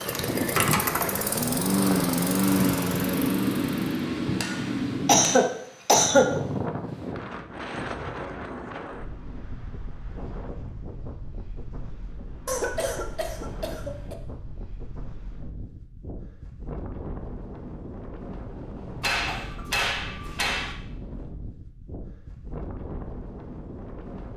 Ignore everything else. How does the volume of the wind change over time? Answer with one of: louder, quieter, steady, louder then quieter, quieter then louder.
quieter.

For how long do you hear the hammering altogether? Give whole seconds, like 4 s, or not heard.
4 s.